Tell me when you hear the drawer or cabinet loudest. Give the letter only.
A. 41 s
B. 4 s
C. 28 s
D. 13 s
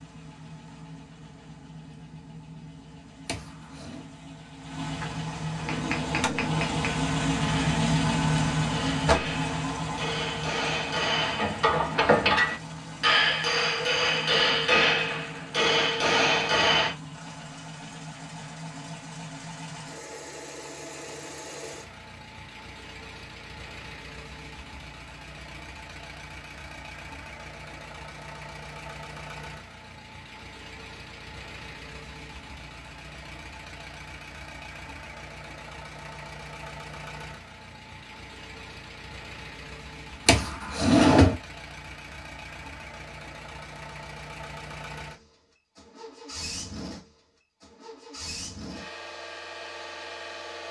A.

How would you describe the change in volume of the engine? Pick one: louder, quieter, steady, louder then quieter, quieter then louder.
quieter.